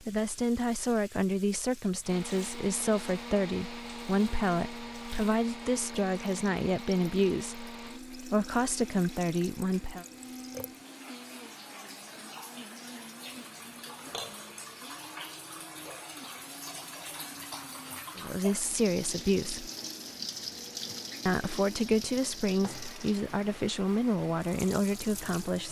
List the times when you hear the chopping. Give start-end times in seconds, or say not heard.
not heard.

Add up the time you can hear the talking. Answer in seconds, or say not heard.
16 s.